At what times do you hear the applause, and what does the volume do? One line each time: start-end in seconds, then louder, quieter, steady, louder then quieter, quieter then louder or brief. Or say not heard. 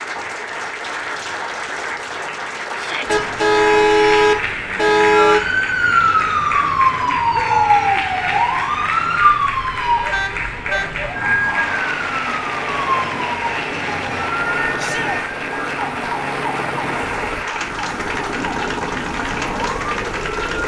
0.0-20.6 steady.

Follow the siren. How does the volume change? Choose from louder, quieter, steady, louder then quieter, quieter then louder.
quieter.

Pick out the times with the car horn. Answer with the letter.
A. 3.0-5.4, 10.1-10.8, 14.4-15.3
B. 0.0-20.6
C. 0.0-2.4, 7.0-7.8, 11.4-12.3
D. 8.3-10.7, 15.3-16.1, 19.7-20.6
A.